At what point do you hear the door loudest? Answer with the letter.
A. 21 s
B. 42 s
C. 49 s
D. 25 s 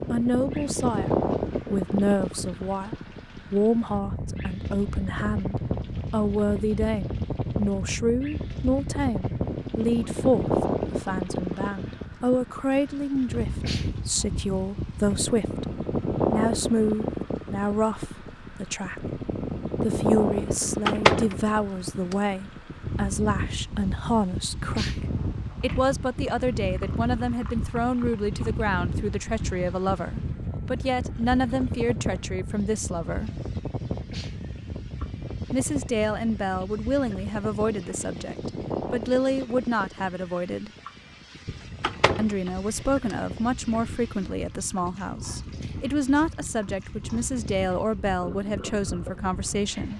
A.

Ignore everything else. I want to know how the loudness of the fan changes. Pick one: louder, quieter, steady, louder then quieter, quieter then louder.
quieter.